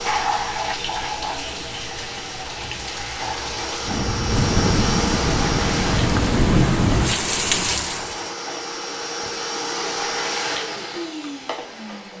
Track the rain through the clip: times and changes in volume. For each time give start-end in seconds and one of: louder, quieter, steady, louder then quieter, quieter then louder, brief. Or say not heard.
0.0-8.3 louder.